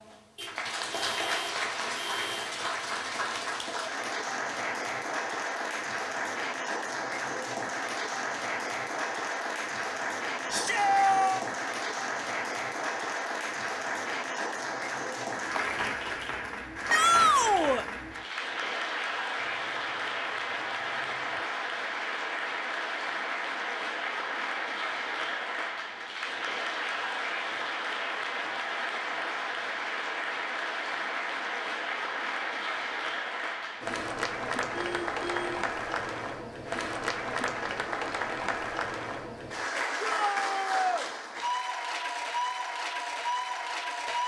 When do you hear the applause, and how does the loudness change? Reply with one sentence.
You can hear the applause from 0.0 to 44.2 s, at a steady volume.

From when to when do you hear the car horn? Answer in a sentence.
The car horn can be heard from 0.3 to 2.5 s, from 19.4 to 21.4 s and from 34.7 to 35.6 s.